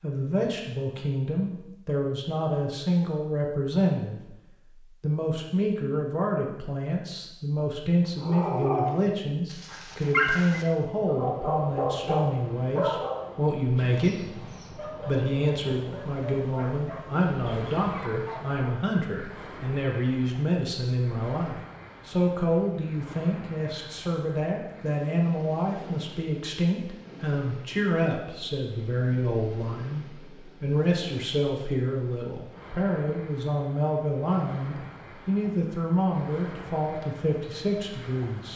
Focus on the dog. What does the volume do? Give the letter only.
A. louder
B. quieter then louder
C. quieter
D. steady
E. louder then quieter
C.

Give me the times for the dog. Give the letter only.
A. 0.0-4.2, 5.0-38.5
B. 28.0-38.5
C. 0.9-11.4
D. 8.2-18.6
D.